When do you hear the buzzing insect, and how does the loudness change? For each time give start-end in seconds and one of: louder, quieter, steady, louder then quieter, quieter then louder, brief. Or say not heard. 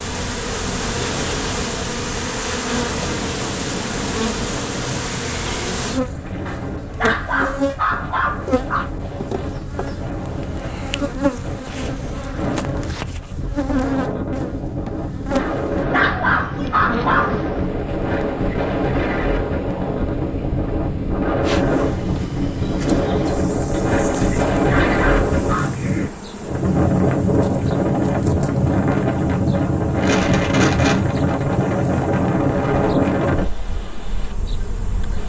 0.0-35.2 quieter.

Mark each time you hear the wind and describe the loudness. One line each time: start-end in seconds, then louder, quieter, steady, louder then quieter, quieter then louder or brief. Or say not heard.
0.0-35.2 louder.